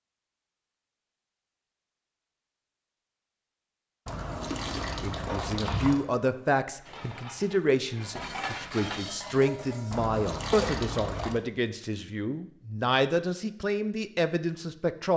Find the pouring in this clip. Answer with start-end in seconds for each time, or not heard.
4.0-6.0, 9.9-11.4.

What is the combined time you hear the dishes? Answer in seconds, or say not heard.
7 s.